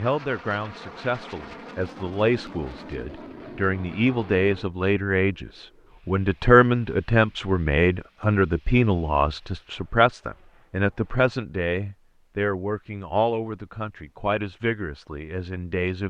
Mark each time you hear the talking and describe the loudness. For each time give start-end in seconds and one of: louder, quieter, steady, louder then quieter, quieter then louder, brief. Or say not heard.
0.0-16.0 louder then quieter.